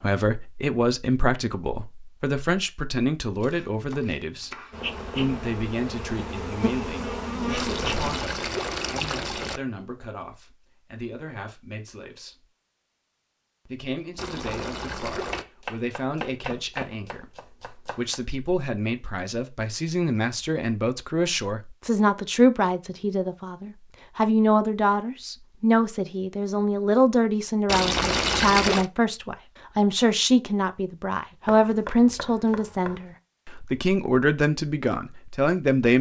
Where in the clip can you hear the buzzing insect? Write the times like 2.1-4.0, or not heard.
4.7-8.2.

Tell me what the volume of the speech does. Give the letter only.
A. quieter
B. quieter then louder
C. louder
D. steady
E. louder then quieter
B.